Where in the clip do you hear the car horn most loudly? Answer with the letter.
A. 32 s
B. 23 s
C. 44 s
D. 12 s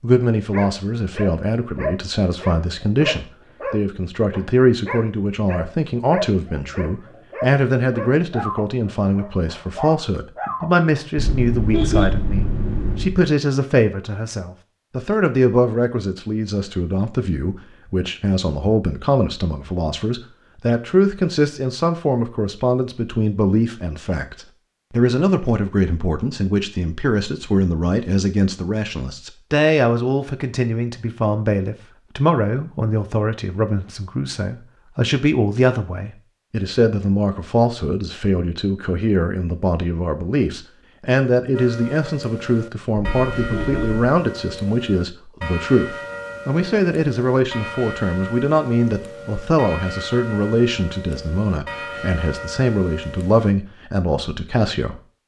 D.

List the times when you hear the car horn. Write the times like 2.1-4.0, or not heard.
11.2-13.2, 43.0-44.0.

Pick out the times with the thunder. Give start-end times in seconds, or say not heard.
not heard.